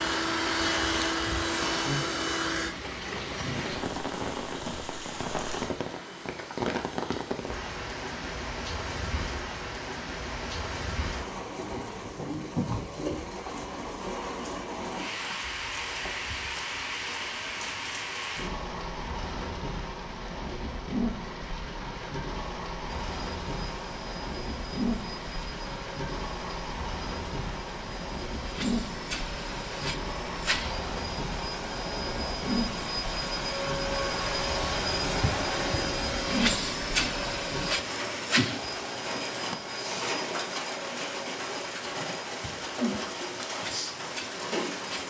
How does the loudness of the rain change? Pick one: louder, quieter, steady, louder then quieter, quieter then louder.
steady.